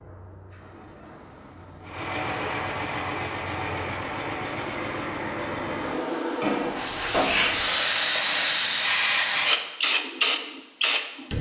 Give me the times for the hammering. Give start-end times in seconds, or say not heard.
5.8-7.4.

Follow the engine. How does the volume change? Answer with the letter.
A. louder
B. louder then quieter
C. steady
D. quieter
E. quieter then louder
C.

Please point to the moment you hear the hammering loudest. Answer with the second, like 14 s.
7 s.